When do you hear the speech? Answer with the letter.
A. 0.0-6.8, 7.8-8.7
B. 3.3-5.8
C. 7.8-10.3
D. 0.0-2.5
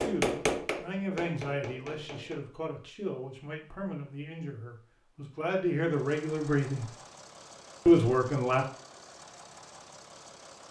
A.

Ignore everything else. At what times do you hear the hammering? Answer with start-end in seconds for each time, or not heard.
0.0-2.5.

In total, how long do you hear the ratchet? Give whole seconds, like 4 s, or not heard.
not heard.